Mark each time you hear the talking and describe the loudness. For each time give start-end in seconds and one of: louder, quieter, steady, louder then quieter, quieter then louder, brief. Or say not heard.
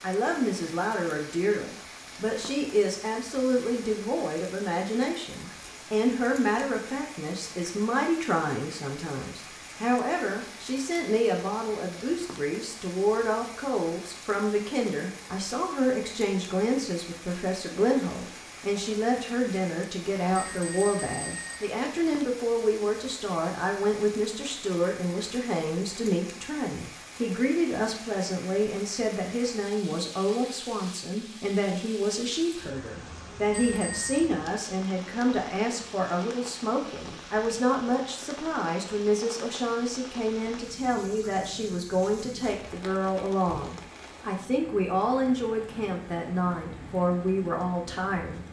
0.0-48.4 steady.